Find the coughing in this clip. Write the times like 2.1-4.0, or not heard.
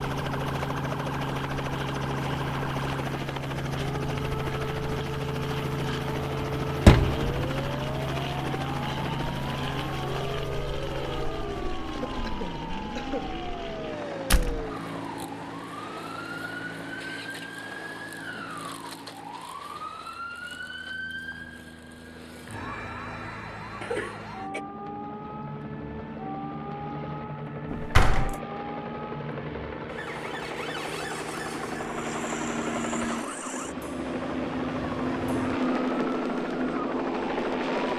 12.1-13.3, 23.8-24.6.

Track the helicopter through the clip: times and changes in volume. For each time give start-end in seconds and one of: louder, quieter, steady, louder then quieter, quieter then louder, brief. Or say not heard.
0.0-37.9 quieter then louder.